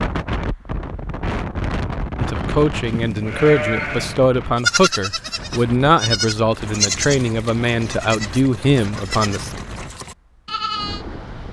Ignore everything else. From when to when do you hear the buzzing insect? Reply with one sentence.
The buzzing insect can't be heard in this clip.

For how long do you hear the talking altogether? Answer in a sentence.
The talking can be heard for 7 seconds in total.